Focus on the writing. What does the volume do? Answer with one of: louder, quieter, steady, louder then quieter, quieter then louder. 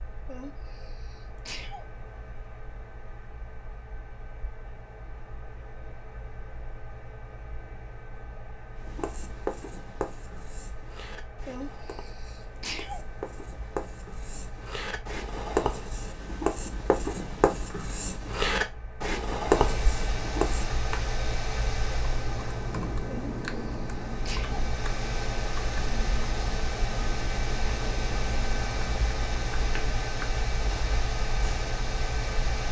quieter then louder.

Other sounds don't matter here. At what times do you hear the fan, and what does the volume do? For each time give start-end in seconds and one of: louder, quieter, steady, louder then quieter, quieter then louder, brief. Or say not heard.
0.0-32.6 louder.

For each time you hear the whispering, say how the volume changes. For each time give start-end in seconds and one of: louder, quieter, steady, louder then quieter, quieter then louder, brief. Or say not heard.
not heard.